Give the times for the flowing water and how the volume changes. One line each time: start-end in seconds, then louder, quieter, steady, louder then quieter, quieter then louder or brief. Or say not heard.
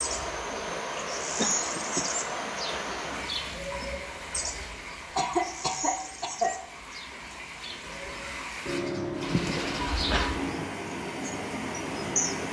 0.0-12.4 quieter then louder.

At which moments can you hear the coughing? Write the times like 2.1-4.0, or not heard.
1.4-2.4, 5.2-6.6, 9.3-10.3.